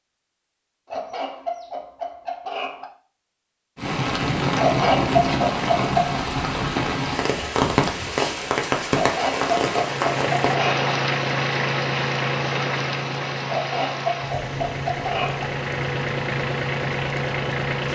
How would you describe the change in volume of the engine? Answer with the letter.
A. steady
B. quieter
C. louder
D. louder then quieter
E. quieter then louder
E.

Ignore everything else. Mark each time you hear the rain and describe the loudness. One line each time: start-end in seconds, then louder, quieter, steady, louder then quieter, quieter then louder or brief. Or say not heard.
3.8-17.8 quieter.